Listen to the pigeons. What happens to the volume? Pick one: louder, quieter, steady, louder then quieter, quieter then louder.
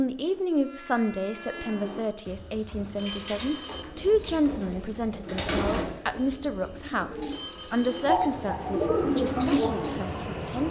louder.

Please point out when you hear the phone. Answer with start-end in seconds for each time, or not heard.
1.9-3.9, 6.2-8.2.